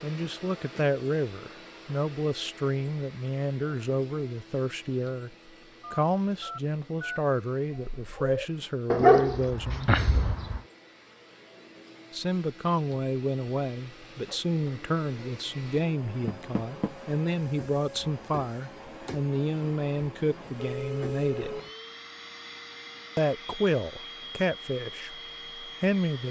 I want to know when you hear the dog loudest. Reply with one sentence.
The loudest moment of the dog is at 9 seconds.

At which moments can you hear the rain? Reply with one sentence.
You can't hear the rain here.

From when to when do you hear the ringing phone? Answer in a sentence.
You can hear the ringing phone from 5.8 to 7.2 s and from 20.6 to 21.7 s.